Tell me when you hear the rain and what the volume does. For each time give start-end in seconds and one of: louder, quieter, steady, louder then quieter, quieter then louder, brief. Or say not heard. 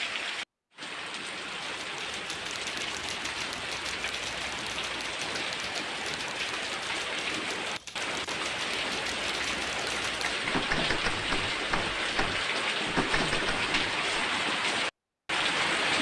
0.0-15.9 louder.